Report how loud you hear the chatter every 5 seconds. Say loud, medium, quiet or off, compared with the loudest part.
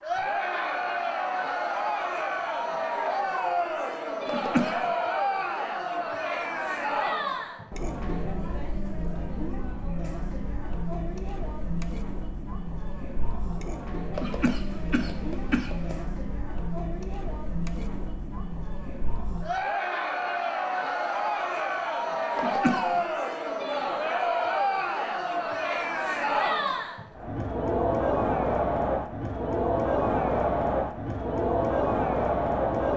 loud, medium, medium, medium, loud, loud, loud.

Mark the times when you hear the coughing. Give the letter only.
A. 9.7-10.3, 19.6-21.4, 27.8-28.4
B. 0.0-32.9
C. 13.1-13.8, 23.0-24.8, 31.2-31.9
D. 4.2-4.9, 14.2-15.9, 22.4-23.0
D.